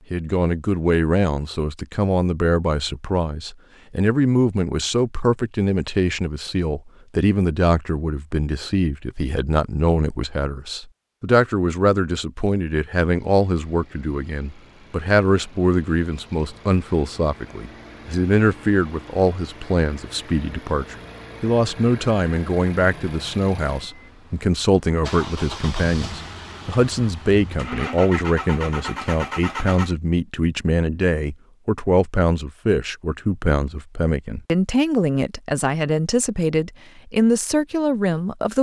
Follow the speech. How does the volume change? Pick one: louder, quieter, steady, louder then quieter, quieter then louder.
steady.